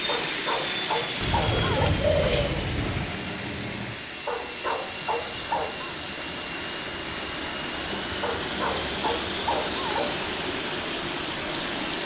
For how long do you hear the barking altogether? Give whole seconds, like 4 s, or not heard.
6 s.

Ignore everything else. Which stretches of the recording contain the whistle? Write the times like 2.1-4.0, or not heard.
not heard.